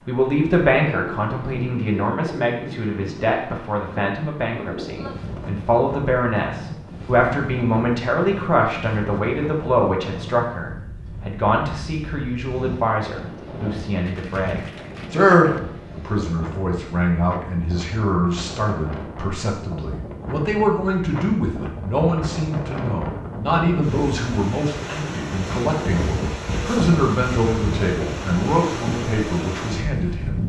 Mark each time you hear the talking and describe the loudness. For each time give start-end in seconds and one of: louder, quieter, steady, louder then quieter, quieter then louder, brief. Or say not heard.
0.1-30.4 steady.